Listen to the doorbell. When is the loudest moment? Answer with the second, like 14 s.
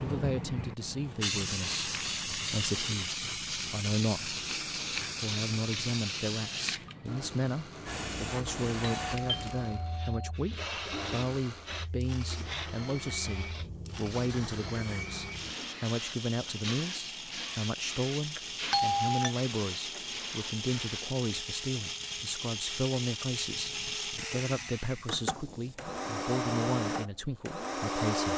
19 s.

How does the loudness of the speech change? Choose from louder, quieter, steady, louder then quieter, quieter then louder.
steady.